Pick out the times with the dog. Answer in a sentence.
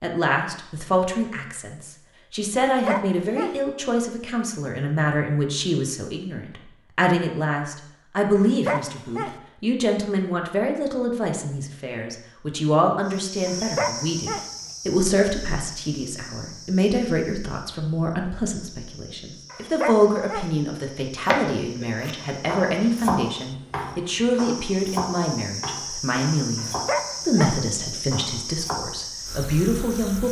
The dog can be heard from 2.6 to 3.5 s, from 8.3 to 9.3 s, from 13.4 to 14.4 s, from 19.5 to 20.5 s and from 26.6 to 27.6 s.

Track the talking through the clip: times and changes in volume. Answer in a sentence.
You can hear the talking from 0.0 to 30.2 s, at a steady volume.